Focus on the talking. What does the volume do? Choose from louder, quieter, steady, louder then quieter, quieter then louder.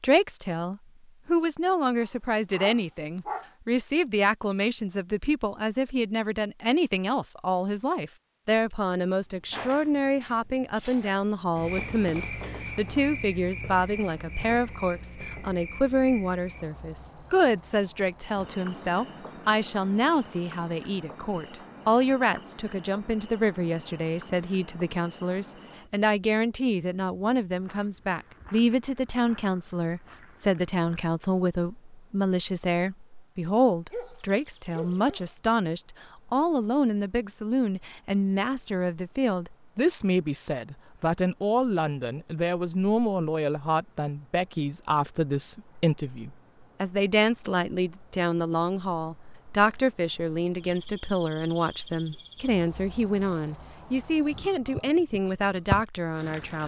steady.